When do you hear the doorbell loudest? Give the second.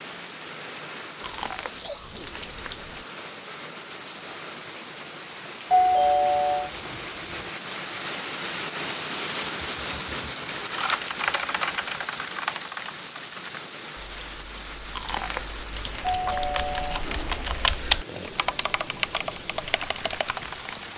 6 s.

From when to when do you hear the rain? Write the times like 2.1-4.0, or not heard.
0.0-20.9.